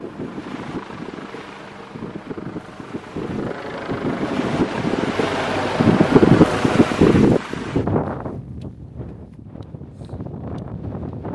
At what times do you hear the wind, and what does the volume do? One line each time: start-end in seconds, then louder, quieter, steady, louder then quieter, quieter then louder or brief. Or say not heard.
0.0-11.2 louder then quieter.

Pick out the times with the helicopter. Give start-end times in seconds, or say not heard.
0.0-7.2.